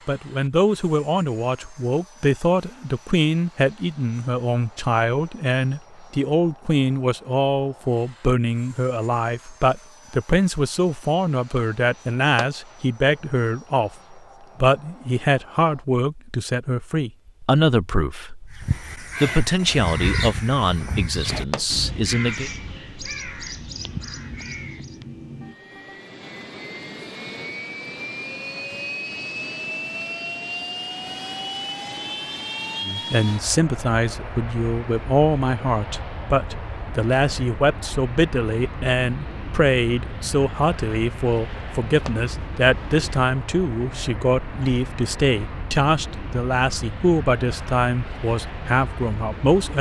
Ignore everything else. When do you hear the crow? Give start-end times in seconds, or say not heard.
18.5-25.1.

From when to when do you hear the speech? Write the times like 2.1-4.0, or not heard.
0.1-13.9, 14.6-22.5, 32.9-49.7.